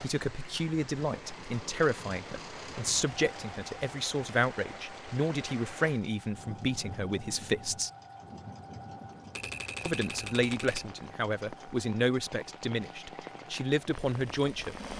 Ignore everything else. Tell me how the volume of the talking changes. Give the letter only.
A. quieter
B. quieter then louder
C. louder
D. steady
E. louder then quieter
D.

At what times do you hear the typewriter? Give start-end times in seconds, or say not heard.
9.3-10.9.